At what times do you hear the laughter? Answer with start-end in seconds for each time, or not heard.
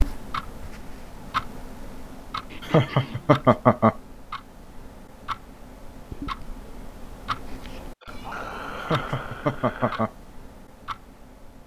2.6-4.0, 8.8-10.1.